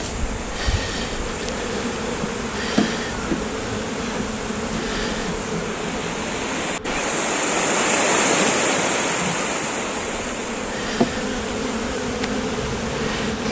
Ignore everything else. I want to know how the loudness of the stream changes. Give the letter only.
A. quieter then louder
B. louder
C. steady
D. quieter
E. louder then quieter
E.